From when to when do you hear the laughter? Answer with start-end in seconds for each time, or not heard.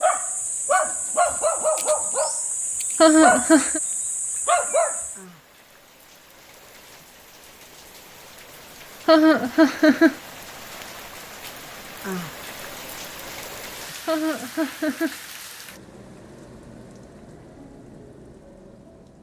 3.0-3.8, 9.1-10.2, 14.1-15.2.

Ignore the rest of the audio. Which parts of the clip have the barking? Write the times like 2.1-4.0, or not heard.
0.0-5.2.